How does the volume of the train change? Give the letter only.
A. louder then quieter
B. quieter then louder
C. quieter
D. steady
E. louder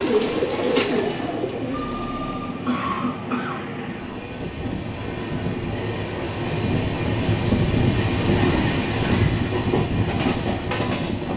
E.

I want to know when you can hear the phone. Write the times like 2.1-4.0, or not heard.
1.7-2.5.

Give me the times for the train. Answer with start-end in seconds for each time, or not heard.
0.0-11.3.